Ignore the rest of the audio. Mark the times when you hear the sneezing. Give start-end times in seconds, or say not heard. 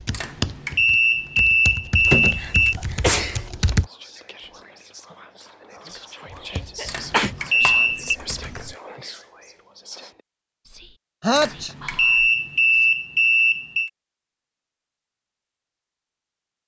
2.0-3.4, 6.8-7.3, 11.2-11.8.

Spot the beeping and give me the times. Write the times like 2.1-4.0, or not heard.
0.1-2.8, 6.8-8.2, 11.3-13.9.